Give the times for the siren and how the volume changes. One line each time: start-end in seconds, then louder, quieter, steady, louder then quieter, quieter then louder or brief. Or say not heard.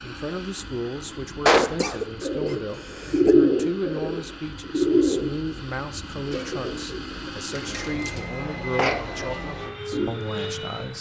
not heard.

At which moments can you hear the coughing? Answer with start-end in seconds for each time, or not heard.
1.4-3.4, 8.6-9.2.